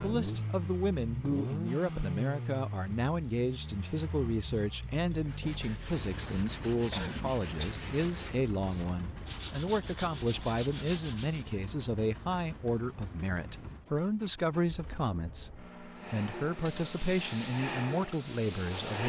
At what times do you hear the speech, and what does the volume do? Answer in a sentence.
You can hear the speech from 0.0 to 19.0 s, at a steady volume.